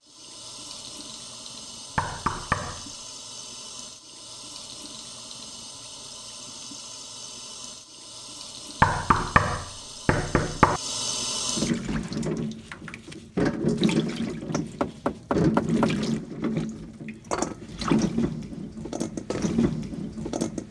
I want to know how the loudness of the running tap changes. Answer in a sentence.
The loudness of the running tap goes up.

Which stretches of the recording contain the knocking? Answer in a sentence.
You can hear the knocking from 1.9 to 2.9 s, from 8.8 to 10.8 s and from 14.5 to 16.0 s.